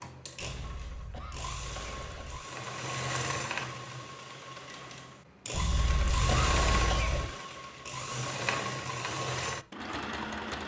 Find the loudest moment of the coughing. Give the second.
6 s.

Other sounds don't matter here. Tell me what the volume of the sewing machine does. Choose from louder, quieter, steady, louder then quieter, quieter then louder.
louder.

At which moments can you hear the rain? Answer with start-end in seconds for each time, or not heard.
not heard.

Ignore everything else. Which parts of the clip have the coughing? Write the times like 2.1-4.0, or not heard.
0.5-2.4, 5.5-7.3.